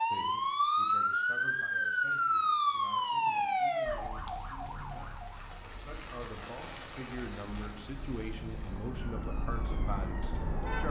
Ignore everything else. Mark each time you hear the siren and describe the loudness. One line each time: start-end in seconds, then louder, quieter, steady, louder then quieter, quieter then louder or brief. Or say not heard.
0.0-10.8 quieter then louder.